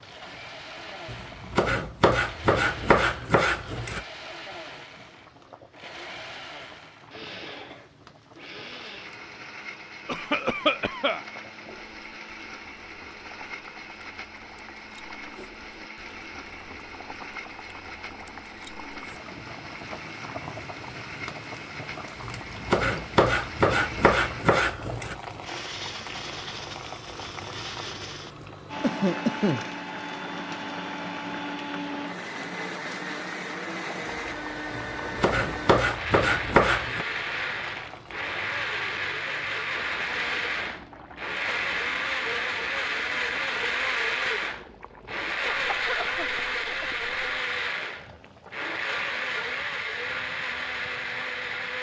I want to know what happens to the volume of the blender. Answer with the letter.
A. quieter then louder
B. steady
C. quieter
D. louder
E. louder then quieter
D.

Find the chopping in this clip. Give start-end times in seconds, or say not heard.
1.1-4.0, 22.2-25.1, 34.8-37.0.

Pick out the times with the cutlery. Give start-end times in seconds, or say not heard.
not heard.